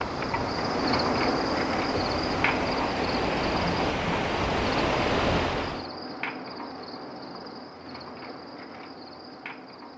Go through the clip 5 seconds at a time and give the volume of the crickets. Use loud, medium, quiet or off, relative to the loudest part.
loud, medium.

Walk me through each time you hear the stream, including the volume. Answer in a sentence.
The stream can be heard from 0.0 to 5.9 s, getting louder.